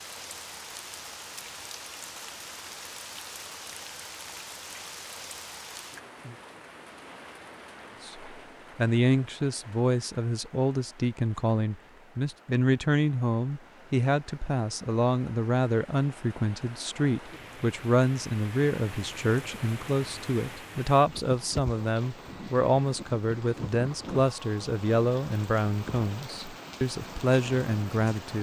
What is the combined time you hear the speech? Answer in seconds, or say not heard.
20 s.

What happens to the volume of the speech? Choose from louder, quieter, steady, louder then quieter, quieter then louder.
steady.